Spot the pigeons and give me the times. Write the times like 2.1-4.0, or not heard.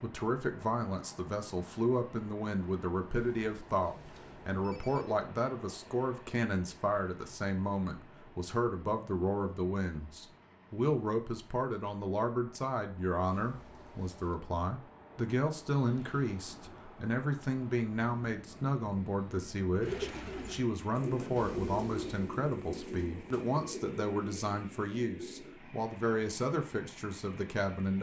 19.8-25.6.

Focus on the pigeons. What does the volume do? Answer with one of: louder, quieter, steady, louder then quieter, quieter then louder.
quieter.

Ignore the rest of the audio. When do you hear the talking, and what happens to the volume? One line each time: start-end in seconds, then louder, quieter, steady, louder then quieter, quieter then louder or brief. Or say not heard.
0.0-27.9 steady.